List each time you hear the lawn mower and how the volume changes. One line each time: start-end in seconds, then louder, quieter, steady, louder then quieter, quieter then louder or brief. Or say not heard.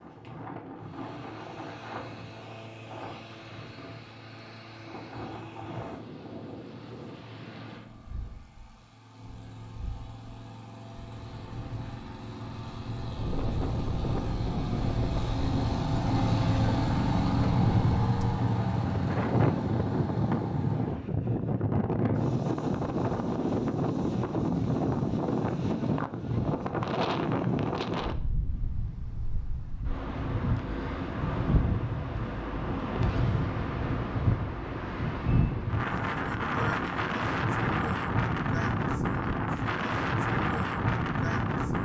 0.0-21.0 louder.